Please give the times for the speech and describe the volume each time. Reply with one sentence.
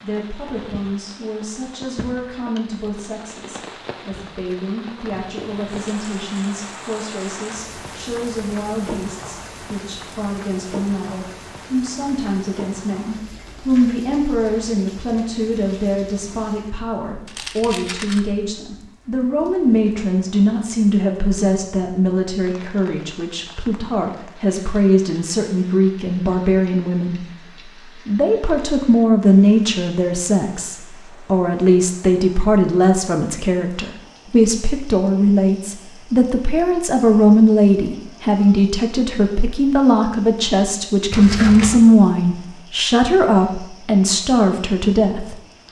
The speech can be heard from 0.0 to 27.2 s, getting louder; and from 28.1 to 45.4 s, at a steady volume.